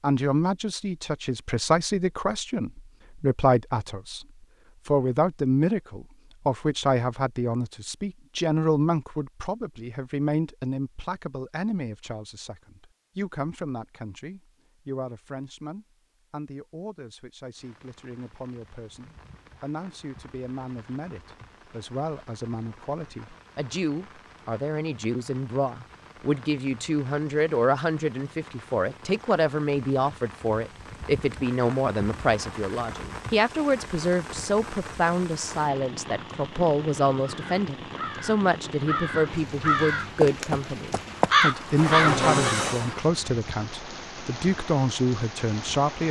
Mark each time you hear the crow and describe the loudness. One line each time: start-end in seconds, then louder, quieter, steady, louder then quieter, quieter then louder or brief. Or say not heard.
37.2-43.0 louder.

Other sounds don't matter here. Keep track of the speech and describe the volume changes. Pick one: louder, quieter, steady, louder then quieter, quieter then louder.
quieter then louder.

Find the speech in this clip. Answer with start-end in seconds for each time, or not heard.
0.0-4.2, 4.8-46.0.